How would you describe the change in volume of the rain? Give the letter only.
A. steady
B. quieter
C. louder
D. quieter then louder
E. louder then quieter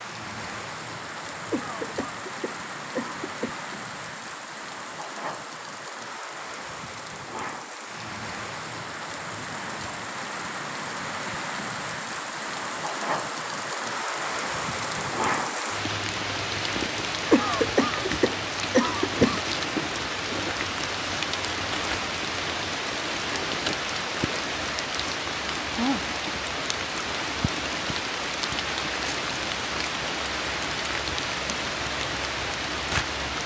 C.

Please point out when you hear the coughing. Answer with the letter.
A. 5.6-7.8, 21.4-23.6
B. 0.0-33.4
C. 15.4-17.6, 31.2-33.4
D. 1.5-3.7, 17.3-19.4
D.